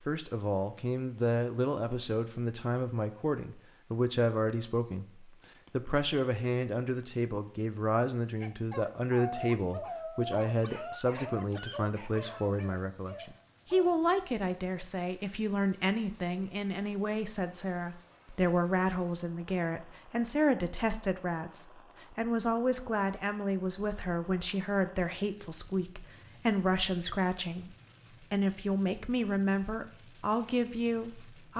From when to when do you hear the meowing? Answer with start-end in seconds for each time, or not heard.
not heard.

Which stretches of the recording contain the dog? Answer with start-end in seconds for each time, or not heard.
8.4-13.9.